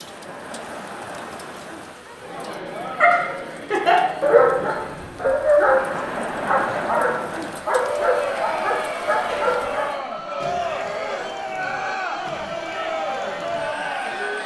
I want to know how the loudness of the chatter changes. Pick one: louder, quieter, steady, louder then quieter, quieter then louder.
louder.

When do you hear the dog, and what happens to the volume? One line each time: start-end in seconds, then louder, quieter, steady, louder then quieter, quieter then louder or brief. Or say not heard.
3.0-9.9 quieter.